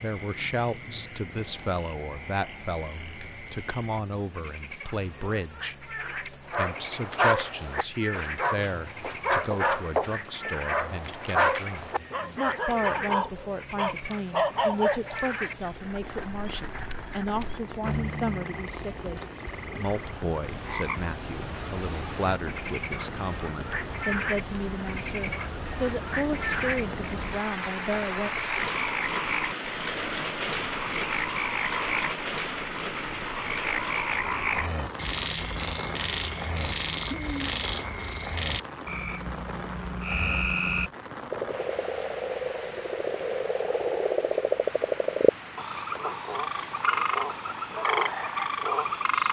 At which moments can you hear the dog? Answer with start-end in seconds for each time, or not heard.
6.5-15.2.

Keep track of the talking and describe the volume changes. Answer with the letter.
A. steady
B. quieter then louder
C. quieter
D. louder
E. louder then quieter
A.